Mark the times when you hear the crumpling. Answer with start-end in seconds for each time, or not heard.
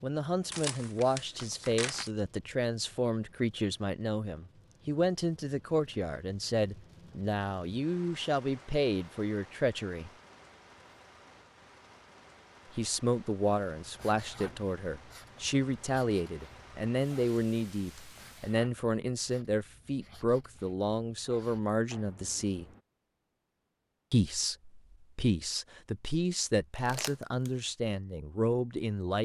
0.5-2.1, 26.8-27.5.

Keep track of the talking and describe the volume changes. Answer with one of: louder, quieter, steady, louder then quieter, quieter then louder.
steady.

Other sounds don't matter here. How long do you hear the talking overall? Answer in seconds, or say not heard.
25 s.